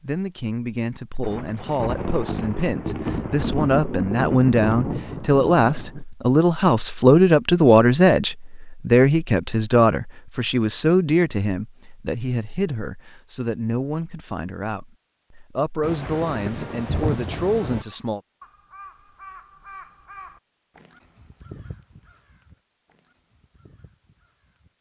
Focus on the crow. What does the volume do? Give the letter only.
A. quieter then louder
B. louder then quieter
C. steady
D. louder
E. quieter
E.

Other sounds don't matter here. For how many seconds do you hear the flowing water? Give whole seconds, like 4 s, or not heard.
not heard.